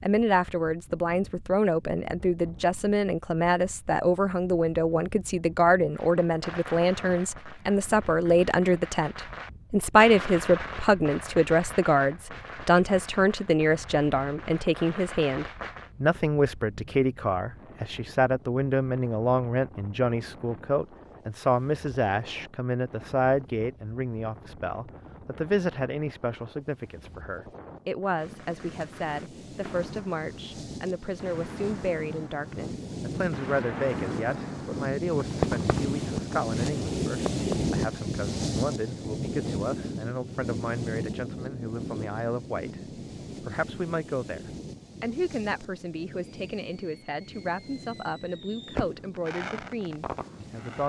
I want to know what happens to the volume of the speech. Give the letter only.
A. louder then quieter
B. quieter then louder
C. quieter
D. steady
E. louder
C.